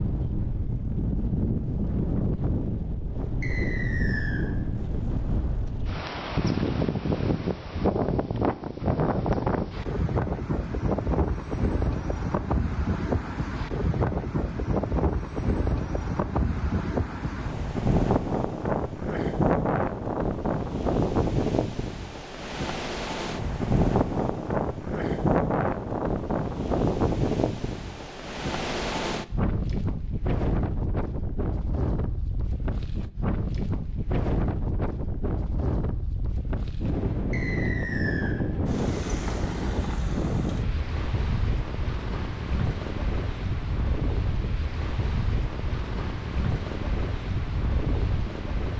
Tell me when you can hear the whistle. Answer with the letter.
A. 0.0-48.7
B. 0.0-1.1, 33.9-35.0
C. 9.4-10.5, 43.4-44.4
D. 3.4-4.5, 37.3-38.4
D.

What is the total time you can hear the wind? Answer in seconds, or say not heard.
49 s.